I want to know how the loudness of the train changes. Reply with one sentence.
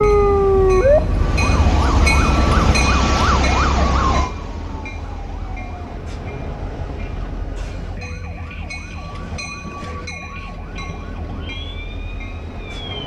The loudness of the train goes down.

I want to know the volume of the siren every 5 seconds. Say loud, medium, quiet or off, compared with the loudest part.
loud, quiet, quiet.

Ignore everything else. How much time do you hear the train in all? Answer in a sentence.
The train can be heard for 13 seconds in total.